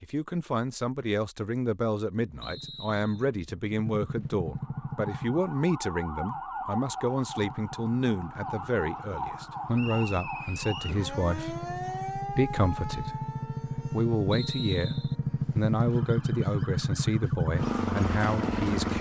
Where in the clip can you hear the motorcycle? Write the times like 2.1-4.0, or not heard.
2.4-5.5, 7.3-18.9.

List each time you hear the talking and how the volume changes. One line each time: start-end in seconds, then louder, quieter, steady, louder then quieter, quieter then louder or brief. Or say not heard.
0.0-18.9 steady.